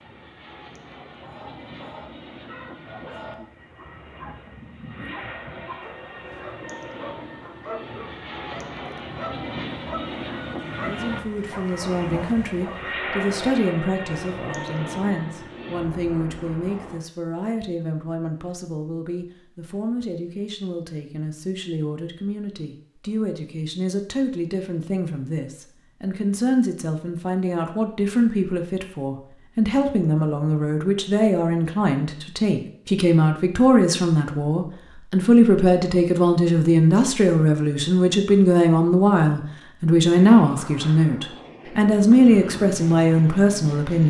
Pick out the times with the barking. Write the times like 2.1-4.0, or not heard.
1.1-12.9.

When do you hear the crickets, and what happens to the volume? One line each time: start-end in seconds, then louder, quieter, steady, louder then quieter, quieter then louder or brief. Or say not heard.
not heard.